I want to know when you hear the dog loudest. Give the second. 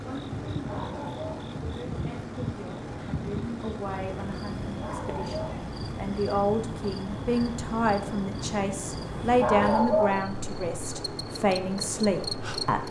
10 s.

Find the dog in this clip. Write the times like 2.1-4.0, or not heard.
0.7-1.5, 4.8-5.7, 9.4-10.3.